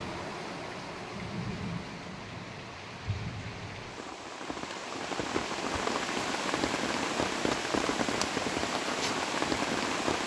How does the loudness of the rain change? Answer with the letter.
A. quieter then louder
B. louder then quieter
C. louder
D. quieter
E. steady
C.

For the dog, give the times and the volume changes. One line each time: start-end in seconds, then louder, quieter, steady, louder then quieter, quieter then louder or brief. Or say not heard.
not heard.